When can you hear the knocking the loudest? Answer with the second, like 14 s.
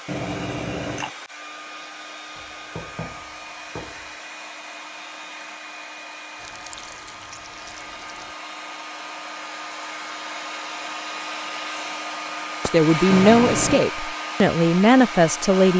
3 s.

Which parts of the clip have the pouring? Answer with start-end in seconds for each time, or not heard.
0.1-1.1, 6.4-8.3, 13.1-13.8.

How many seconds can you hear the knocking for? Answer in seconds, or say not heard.
2 s.